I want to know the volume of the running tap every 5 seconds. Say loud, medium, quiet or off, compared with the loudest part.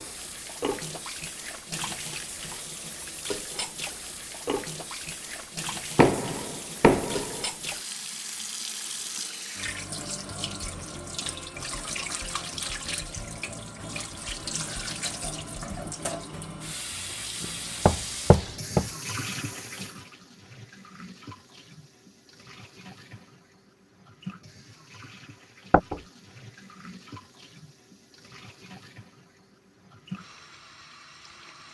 loud, loud, loud, loud, medium, quiet, medium.